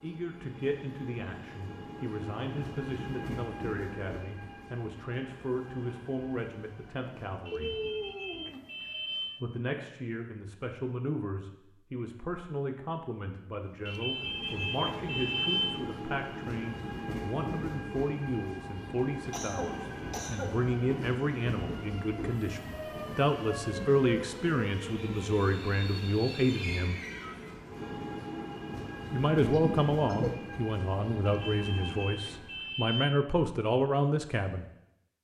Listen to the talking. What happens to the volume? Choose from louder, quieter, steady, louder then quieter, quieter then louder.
louder.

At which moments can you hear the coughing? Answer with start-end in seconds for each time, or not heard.
7.5-8.6, 19.3-20.6, 29.6-30.3.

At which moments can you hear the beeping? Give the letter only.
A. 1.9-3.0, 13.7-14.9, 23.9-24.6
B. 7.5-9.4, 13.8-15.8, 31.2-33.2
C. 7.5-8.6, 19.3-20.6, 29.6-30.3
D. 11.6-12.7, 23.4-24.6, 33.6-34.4
B.